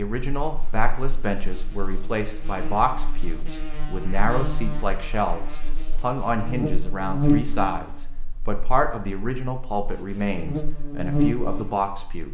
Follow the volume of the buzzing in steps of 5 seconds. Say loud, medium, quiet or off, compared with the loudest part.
medium, loud, loud.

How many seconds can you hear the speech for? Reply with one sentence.
You can hear the speech for 12 seconds altogether.